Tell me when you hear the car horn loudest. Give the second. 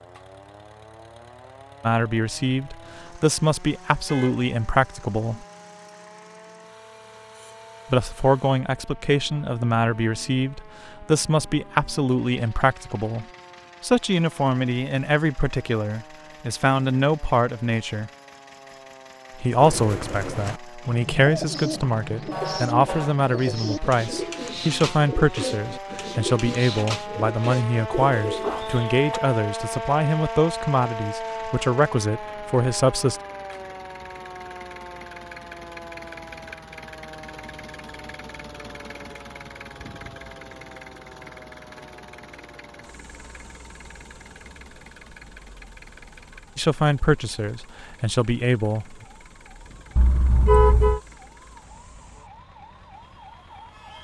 51 s.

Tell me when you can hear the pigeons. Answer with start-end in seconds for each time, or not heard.
19.6-29.2.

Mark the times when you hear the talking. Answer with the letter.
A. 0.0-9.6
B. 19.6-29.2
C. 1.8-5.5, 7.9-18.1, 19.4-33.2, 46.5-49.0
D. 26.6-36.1
C.